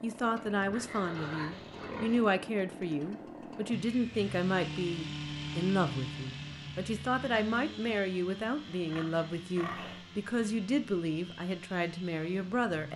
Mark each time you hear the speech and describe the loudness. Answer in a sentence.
You can hear the speech from 0.0 to 12.9 s, at a steady volume.